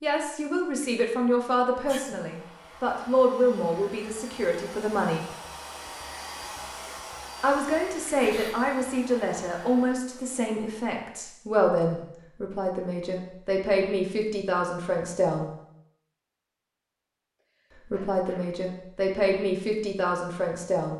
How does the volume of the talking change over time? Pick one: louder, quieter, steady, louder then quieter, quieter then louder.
steady.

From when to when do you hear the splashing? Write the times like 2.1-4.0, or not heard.
not heard.